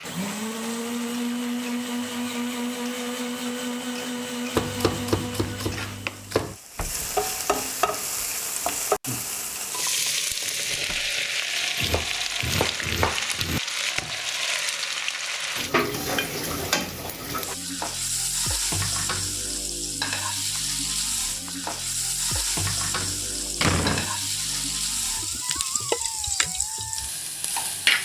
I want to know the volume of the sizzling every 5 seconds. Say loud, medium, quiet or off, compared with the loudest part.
quiet, loud, loud, loud, loud, loud.